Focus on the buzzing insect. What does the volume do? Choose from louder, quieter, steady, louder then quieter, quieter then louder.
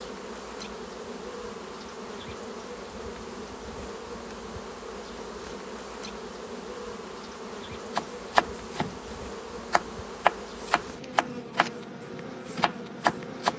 steady.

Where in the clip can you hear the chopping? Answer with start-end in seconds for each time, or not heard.
8.0-13.5.